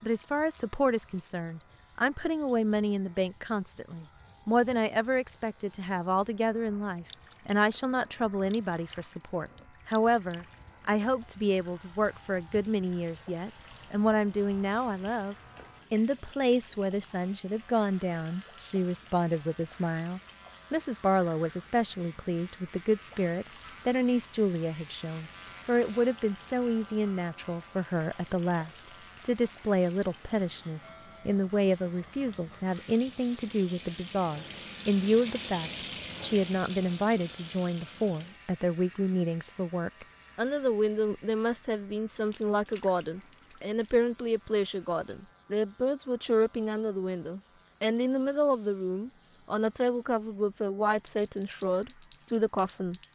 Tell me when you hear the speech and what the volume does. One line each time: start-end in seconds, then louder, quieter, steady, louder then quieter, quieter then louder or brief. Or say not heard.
0.0-53.0 steady.